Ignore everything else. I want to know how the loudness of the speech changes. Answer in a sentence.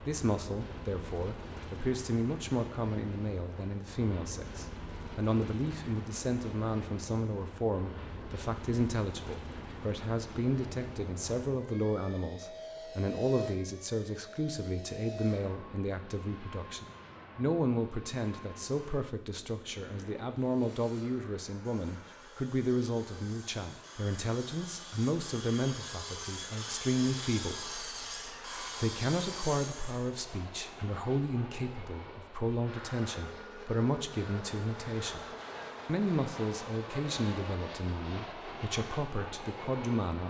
The volume of the speech stays about the same.